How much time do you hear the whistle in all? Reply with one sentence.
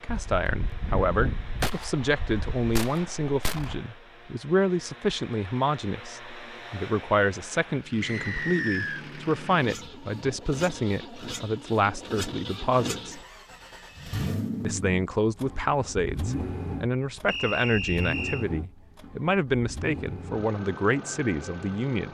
You can hear the whistle for 2 seconds altogether.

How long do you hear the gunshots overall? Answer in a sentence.
The gunshots can be heard for 4 seconds in total.